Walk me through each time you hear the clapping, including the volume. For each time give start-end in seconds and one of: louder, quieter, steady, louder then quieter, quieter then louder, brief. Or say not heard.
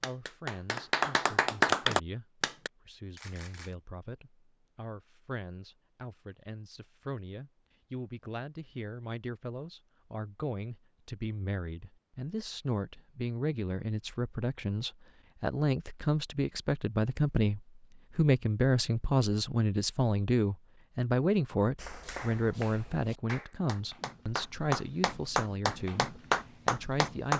0.0-2.7 brief
21.8-27.3 louder.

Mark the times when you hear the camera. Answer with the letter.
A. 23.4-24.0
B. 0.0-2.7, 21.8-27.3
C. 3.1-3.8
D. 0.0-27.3
C.